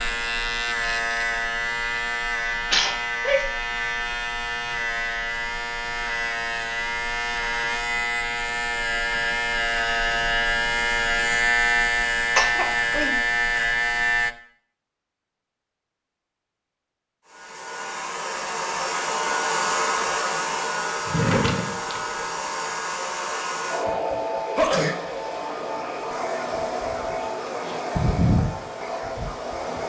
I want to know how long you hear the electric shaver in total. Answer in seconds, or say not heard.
14 s.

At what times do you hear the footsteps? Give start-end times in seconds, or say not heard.
not heard.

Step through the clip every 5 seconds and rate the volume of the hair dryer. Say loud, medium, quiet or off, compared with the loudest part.
off, off, off, loud, loud, loud.